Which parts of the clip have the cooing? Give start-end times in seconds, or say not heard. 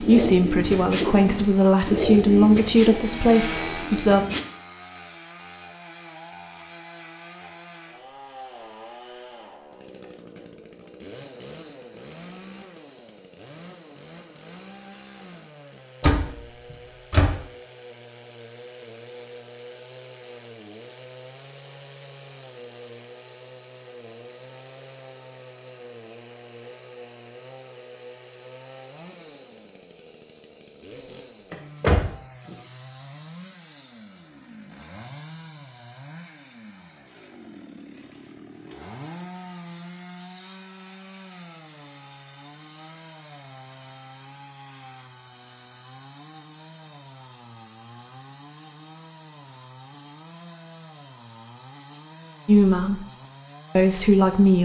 0.0-4.4.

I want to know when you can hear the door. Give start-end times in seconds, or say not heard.
16.0-17.4, 31.5-32.5.